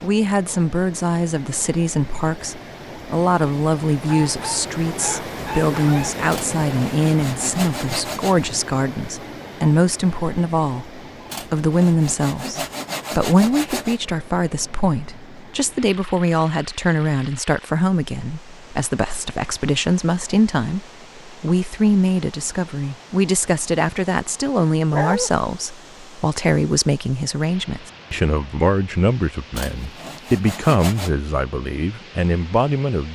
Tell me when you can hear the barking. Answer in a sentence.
The barking can be heard from 4.0 to 6.1 s and from 24.9 to 25.3 s.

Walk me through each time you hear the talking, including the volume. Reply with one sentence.
The talking can be heard from 0.0 to 33.0 s, at a steady volume.